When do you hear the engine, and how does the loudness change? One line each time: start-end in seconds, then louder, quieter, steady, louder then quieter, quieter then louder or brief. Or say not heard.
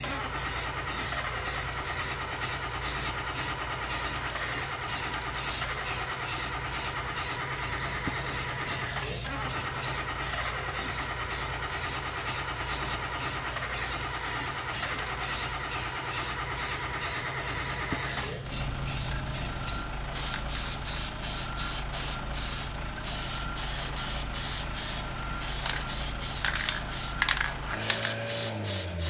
0.0-29.0 steady.